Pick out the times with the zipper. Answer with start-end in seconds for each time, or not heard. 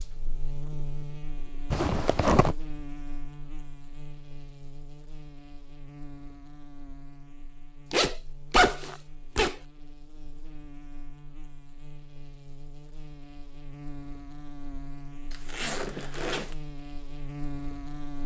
1.7-2.5, 7.9-9.6, 15.3-16.6.